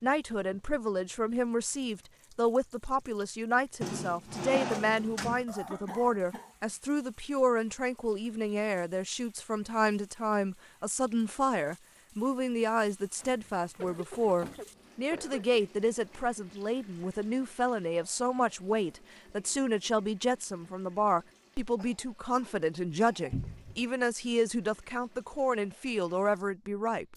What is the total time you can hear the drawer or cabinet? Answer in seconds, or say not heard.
4 s.